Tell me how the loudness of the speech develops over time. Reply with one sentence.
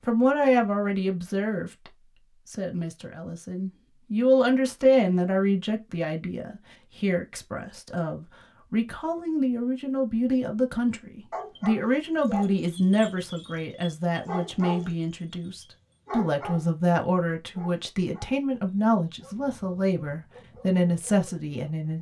The loudness of the speech stays about the same.